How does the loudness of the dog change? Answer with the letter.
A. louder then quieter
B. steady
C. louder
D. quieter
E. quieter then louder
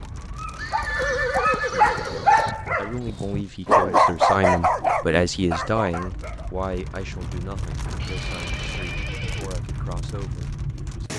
A.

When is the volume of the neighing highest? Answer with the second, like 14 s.
1 s.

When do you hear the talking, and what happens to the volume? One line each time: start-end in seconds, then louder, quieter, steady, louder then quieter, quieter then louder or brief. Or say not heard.
1.6-11.1 louder then quieter.